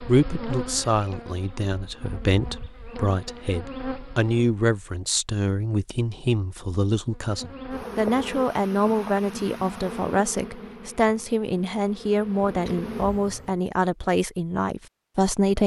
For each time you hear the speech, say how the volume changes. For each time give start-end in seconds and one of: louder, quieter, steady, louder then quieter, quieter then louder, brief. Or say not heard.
0.1-15.6 steady.